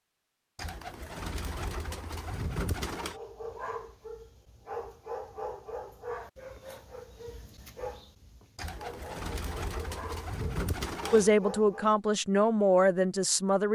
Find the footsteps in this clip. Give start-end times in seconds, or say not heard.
not heard.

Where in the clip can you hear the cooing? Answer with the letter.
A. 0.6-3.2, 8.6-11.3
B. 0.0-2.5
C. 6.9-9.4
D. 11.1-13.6
A.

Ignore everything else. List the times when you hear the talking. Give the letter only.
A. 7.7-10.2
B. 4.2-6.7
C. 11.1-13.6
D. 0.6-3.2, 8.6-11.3
C.